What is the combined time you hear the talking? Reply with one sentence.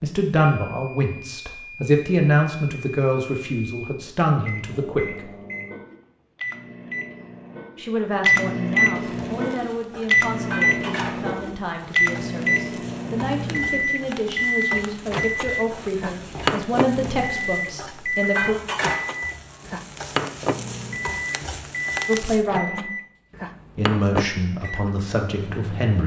You can hear the talking for 19 seconds altogether.